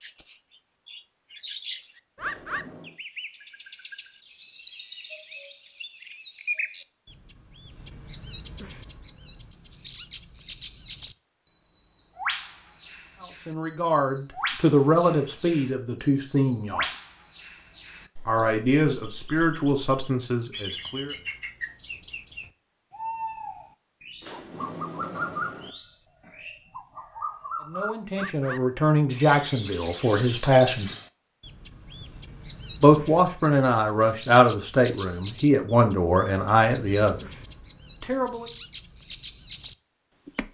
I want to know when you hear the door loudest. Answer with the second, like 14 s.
25 s.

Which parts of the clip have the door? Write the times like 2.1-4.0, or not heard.
2.2-3.0, 24.2-25.8.